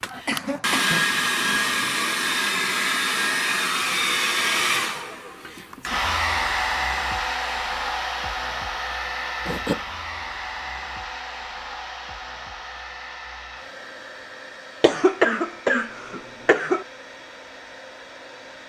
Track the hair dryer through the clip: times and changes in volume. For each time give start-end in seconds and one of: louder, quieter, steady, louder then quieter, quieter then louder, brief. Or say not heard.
0.0-18.6 quieter.